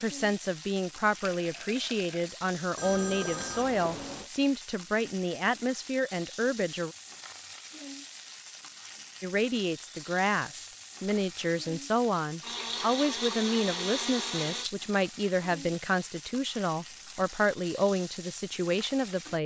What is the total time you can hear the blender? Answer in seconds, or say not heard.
2 s.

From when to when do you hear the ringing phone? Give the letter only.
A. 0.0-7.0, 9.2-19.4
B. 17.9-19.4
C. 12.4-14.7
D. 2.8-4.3
D.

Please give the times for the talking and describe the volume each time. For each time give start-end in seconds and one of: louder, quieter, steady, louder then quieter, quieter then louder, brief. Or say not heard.
0.0-7.0 steady
9.2-19.4 steady.